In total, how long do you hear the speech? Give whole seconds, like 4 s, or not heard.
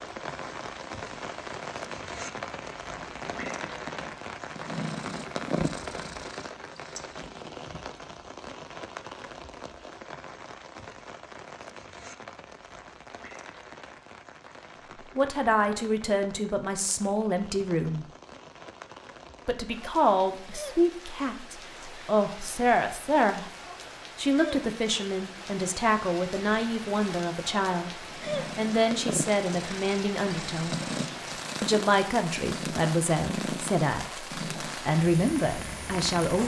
18 s.